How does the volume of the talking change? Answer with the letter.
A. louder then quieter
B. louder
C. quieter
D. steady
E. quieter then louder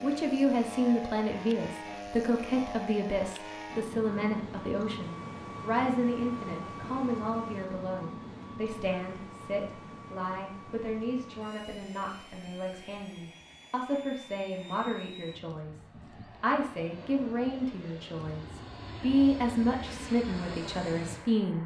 E.